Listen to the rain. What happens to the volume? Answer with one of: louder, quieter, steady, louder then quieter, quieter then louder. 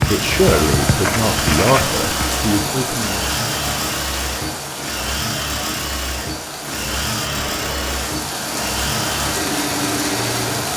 quieter then louder.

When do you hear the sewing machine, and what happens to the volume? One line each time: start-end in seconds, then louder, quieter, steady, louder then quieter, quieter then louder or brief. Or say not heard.
0.0-10.7 steady.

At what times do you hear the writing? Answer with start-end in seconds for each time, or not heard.
0.0-2.1.